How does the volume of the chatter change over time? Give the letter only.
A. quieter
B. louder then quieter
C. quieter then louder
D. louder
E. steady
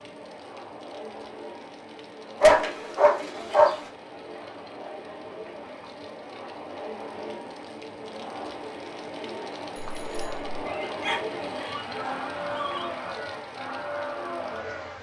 D.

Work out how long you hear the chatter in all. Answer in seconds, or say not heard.
15 s.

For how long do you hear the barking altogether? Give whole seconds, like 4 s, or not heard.
4 s.